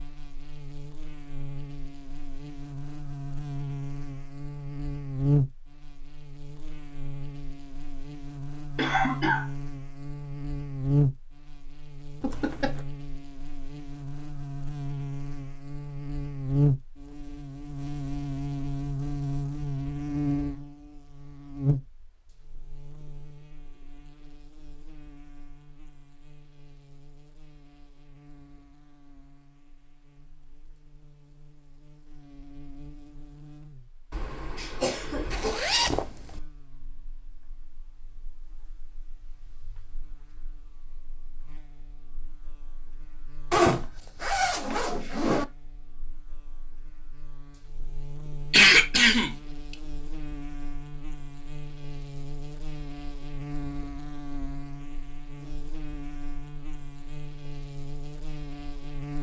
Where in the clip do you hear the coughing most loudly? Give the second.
49 s.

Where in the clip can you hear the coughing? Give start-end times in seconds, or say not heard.
8.8-9.4, 34.1-35.5, 48.5-49.4.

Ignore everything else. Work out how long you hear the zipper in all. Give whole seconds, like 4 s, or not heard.
4 s.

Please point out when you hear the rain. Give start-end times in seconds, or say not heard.
not heard.